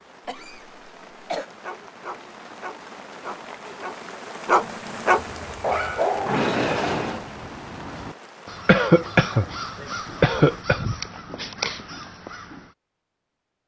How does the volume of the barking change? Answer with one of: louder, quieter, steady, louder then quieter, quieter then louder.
louder.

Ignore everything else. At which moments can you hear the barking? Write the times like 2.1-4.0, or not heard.
1.5-7.2.